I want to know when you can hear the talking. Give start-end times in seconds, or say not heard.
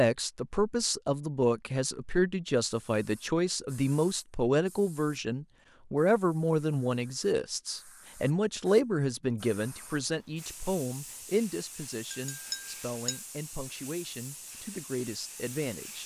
0.0-16.0.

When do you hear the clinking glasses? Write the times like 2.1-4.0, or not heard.
12.1-13.2.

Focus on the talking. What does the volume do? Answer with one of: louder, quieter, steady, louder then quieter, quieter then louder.
quieter.